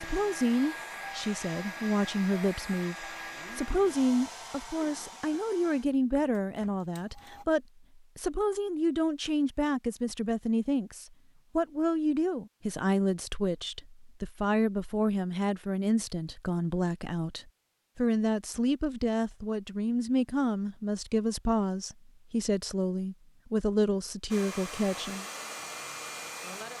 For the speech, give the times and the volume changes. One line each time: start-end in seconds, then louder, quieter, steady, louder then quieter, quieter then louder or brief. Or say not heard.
0.0-25.2 steady.